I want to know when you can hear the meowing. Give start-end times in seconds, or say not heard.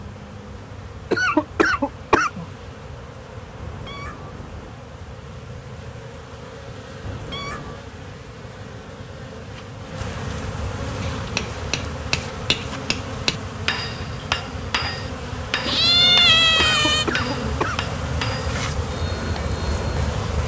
3.5-4.8, 7.0-7.8, 15.7-17.1.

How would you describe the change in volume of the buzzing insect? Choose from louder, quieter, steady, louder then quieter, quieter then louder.
louder.